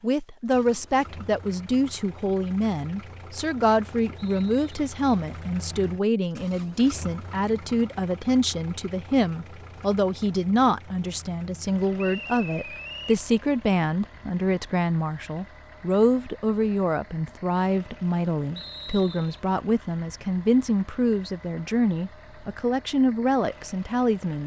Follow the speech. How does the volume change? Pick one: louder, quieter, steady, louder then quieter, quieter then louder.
steady.